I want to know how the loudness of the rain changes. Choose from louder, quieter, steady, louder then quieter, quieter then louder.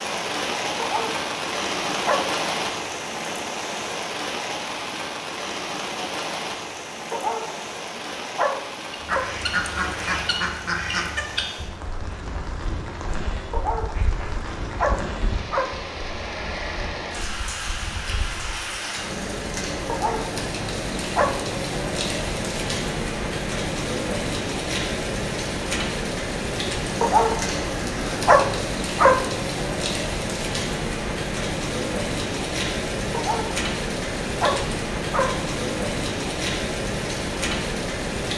quieter then louder.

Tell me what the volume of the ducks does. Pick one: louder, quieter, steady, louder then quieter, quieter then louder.
quieter.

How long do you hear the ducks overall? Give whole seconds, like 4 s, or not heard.
10 s.